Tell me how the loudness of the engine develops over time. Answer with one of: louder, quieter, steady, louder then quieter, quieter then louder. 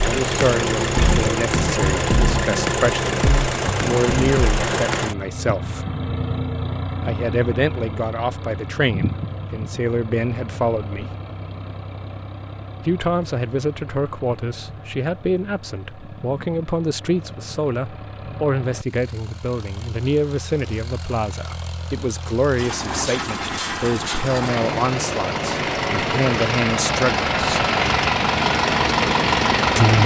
quieter then louder.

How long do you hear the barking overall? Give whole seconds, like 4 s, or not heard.
not heard.